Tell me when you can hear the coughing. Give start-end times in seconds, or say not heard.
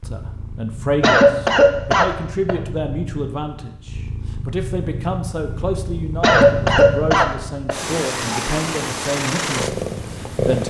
1.0-2.5, 6.2-7.8.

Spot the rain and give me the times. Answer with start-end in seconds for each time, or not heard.
not heard.